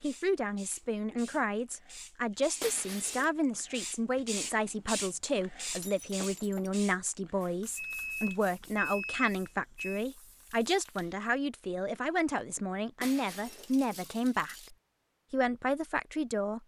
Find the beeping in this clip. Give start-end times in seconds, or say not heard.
7.8-10.1.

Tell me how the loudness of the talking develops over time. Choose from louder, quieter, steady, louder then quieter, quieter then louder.
steady.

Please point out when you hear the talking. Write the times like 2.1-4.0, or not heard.
0.0-16.6.